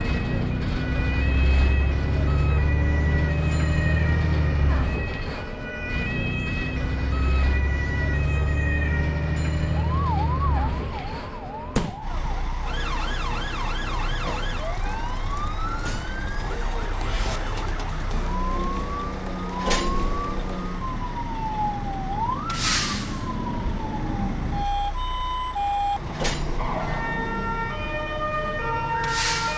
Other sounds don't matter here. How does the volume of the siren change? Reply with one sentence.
The volume of the siren goes up.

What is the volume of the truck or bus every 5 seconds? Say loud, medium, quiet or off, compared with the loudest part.
loud, loud, medium, medium, medium, medium.